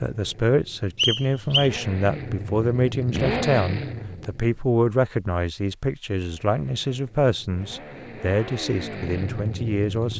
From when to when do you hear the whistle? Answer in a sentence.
The whistle can be heard from 0.9 to 1.7 s.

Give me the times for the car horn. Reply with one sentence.
You can't hear the car horn here.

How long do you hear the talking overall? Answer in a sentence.
The talking can be heard for 10 seconds in total.